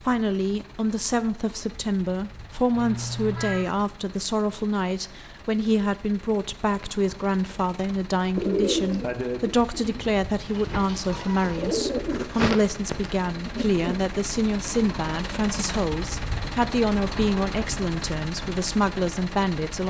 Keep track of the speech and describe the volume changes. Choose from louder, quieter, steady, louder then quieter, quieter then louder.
steady.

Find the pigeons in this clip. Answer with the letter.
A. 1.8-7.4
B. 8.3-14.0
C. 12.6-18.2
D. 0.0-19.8
B.